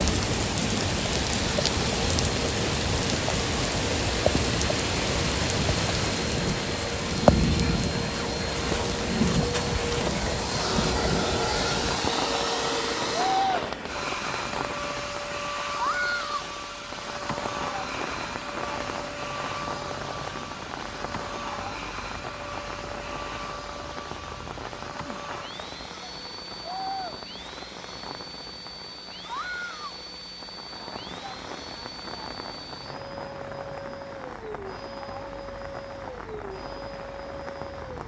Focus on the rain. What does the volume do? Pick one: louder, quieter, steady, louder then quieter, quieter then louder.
quieter.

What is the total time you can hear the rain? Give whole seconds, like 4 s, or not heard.
38 s.